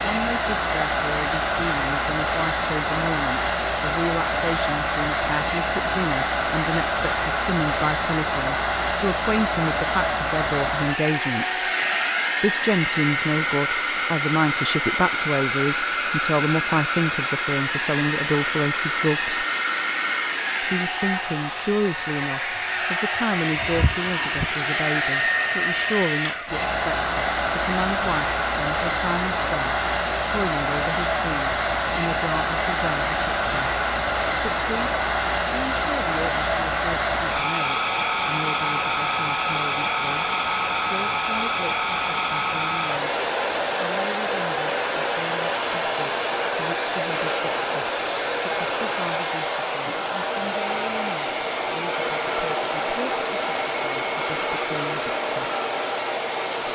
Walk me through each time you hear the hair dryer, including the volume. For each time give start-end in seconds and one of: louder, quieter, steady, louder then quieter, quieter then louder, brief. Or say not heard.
0.0-56.7 steady.